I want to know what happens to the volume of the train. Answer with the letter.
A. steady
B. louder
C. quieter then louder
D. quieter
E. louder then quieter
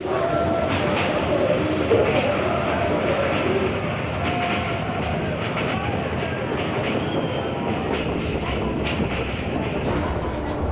A.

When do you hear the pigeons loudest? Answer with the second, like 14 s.
2 s.